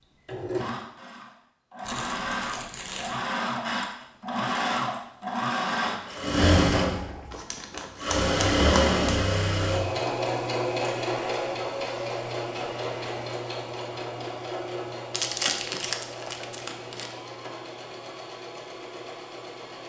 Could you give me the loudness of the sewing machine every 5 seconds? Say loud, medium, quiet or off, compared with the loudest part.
medium, loud, medium, quiet.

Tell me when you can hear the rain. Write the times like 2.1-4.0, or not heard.
not heard.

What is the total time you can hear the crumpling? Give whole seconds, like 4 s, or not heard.
5 s.